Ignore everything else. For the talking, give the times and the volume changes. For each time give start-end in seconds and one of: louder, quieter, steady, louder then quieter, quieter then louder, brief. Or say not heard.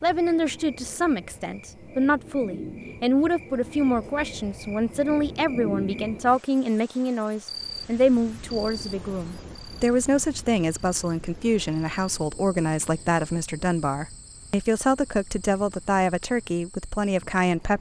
0.0-17.7 steady.